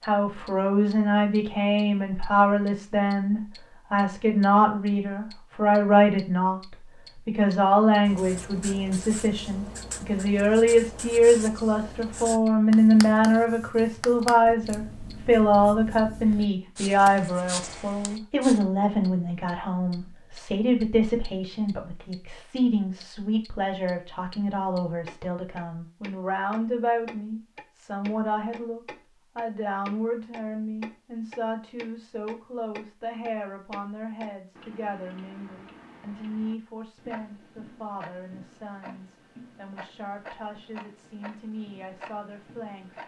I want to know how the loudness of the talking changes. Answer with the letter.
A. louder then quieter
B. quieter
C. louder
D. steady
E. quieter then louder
B.